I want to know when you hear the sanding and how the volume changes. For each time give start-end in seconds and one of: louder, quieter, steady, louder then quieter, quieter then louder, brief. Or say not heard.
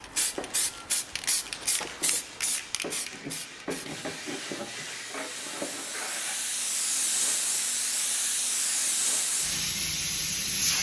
0.1-9.8 louder then quieter.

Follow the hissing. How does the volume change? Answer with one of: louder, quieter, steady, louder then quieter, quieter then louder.
quieter then louder.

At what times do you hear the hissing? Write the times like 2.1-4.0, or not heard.
0.0-10.7.